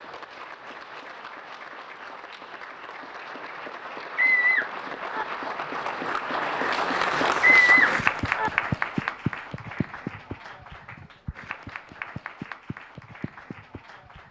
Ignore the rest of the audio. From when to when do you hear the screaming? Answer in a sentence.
You can hear the screaming from 4.2 to 5.2 s and from 7.4 to 8.5 s.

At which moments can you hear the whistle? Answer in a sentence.
You can't hear the whistle here.